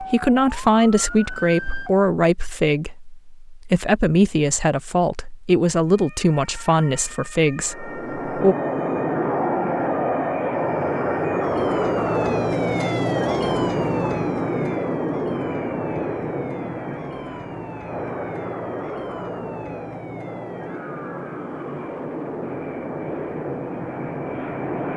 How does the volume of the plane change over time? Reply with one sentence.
The volume of the plane goes down.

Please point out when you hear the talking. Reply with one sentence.
You can hear the talking from 0.0 to 8.6 s.